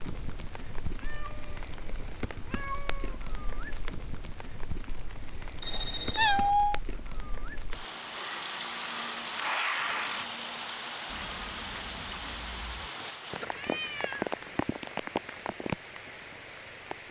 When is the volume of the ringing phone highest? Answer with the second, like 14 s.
6 s.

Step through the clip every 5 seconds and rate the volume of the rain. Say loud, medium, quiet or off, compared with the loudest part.
medium, loud, loud, loud.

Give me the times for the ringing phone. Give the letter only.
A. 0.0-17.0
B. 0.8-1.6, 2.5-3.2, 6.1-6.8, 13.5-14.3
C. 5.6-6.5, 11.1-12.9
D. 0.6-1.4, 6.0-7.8
C.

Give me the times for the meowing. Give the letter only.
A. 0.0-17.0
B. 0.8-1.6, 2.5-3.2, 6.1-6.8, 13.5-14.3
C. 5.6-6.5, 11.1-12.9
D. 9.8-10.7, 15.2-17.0
B.